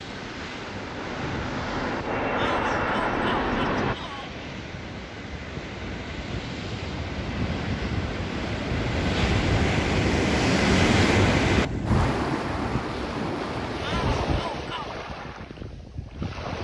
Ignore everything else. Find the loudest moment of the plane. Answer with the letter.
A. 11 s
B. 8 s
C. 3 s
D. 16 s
C.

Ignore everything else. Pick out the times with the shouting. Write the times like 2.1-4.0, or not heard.
2.4-4.3, 13.8-14.9.